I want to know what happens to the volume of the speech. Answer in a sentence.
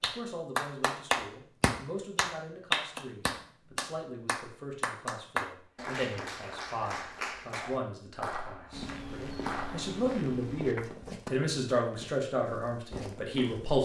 The loudness of the speech goes up.